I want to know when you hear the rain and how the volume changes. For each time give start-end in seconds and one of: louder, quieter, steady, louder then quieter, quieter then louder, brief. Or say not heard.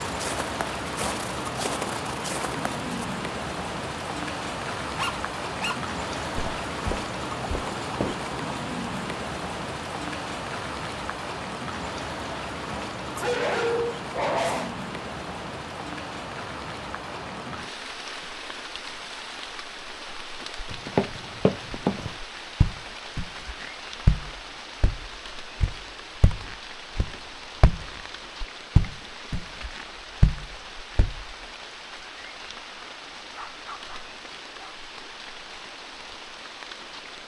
0.0-37.2 quieter.